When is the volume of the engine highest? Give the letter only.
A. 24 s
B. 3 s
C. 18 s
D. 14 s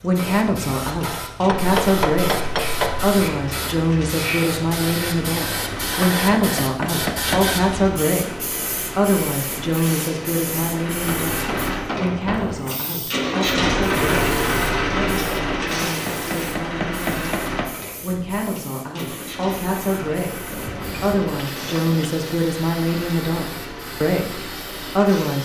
D.